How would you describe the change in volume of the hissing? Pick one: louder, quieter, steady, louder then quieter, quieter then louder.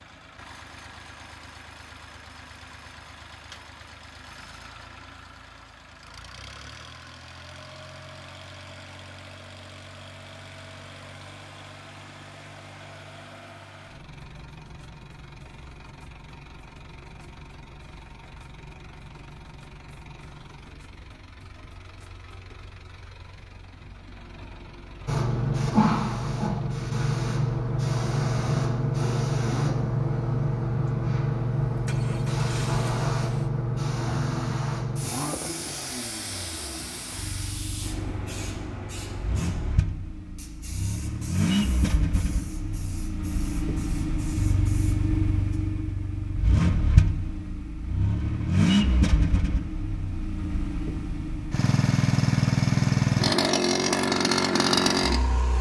quieter.